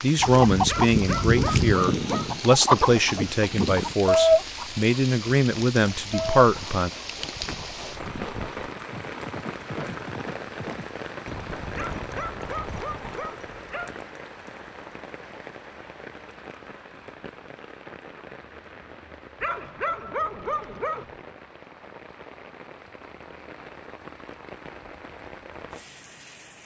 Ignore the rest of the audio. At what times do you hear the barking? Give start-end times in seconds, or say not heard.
0.7-2.4, 11.8-14.0, 19.4-21.1.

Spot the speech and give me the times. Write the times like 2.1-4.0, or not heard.
0.0-6.9.